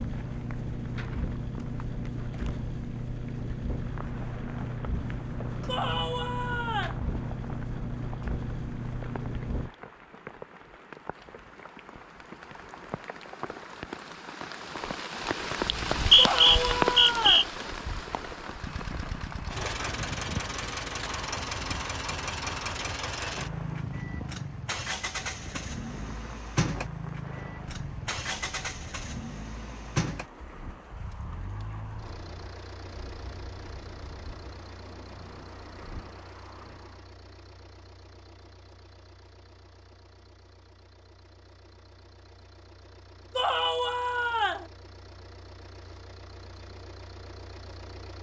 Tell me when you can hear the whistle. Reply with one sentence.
The whistle can be heard from 15.7 to 17.4 s.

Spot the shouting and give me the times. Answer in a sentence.
You can hear the shouting from 5.7 to 7.0 s, from 16.1 to 17.5 s and from 43.4 to 44.7 s.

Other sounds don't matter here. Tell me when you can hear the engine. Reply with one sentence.
The engine can be heard from 0.0 to 9.8 s and from 18.6 to 48.1 s.